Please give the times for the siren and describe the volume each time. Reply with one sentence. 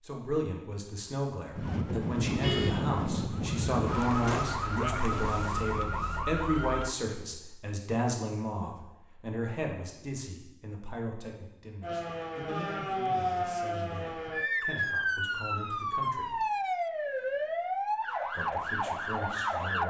The siren can be heard from 1.6 to 7.0 s, at a steady volume; and from 11.8 to 19.8 s, at a steady volume.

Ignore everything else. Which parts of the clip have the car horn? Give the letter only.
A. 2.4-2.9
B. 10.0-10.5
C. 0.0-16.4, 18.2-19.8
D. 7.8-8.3
A.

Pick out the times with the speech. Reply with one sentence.
The speech can be heard from 0.0 to 16.4 s and from 18.2 to 19.8 s.